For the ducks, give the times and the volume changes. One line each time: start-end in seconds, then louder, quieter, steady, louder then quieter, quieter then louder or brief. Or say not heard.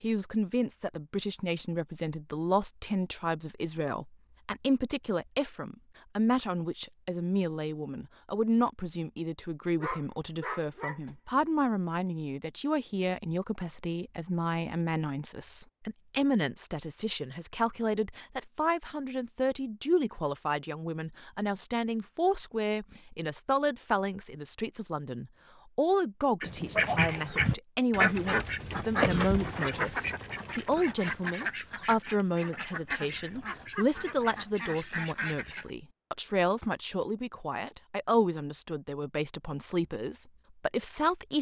26.4-35.7 quieter.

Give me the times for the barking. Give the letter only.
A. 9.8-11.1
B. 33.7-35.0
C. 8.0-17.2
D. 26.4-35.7
A.